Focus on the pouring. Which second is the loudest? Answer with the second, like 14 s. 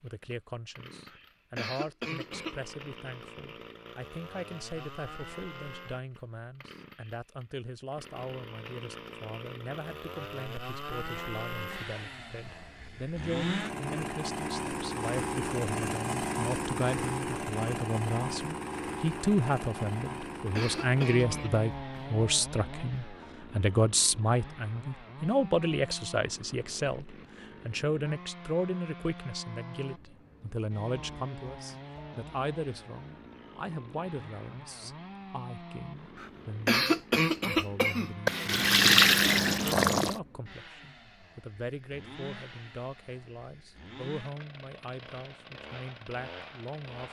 39 s.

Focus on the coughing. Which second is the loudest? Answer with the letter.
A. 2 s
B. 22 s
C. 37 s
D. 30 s
C.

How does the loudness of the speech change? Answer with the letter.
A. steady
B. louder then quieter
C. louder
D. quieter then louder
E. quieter
B.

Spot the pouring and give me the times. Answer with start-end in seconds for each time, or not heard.
38.2-40.2.